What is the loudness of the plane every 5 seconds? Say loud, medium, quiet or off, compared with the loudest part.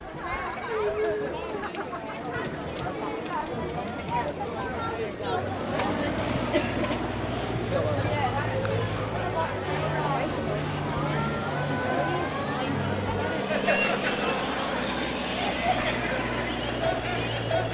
off, loud, loud, loud.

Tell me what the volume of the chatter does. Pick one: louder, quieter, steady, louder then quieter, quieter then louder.
steady.